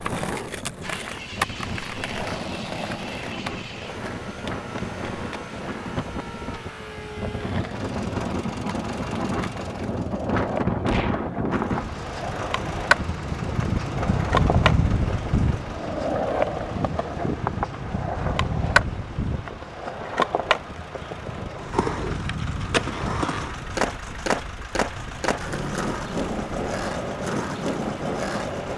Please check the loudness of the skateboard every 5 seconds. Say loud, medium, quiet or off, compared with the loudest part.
medium, quiet, loud, loud, loud, loud.